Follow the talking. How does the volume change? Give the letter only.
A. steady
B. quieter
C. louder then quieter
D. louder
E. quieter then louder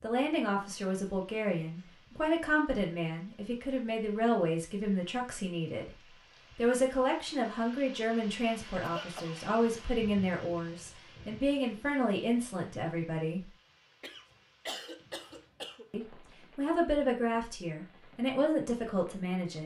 A.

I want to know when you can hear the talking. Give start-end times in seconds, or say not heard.
0.0-5.9, 6.5-13.5, 15.9-19.6.